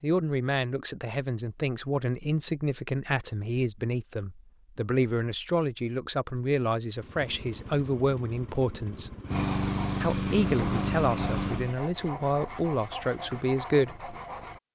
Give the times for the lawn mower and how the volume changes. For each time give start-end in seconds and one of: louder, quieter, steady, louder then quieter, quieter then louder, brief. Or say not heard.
7.0-11.8 louder.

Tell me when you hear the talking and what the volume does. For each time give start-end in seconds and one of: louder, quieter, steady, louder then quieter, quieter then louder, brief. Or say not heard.
0.0-9.1 steady
10.0-14.1 steady.